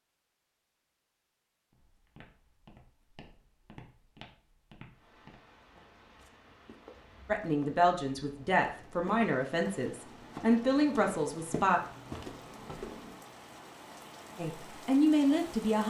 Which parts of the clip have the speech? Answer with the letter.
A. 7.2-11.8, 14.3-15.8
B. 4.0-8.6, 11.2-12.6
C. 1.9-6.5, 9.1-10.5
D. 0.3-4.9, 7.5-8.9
A.